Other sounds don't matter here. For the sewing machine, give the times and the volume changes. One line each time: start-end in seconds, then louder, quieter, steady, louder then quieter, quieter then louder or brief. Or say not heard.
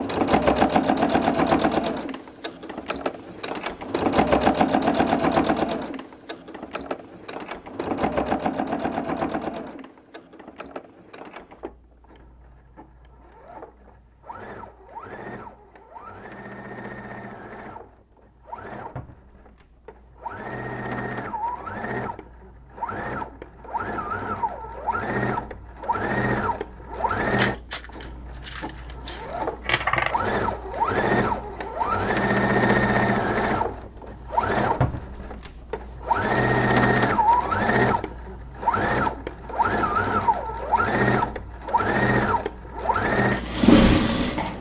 0.0-44.5 quieter then louder.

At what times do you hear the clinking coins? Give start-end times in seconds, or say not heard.
27.4-30.1.